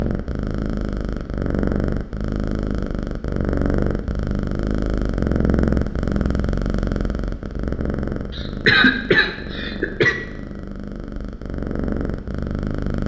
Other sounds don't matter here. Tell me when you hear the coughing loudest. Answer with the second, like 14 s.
9 s.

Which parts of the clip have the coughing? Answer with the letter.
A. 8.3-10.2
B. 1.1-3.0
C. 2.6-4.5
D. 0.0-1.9
A.